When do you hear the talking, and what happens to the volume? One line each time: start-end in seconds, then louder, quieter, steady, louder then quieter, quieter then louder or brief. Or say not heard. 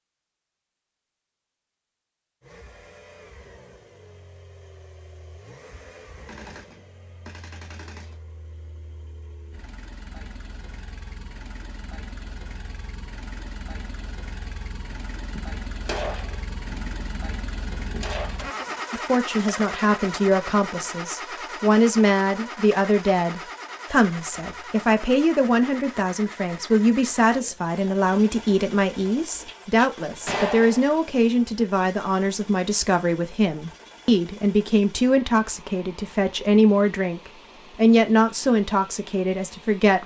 18.9-40.0 steady.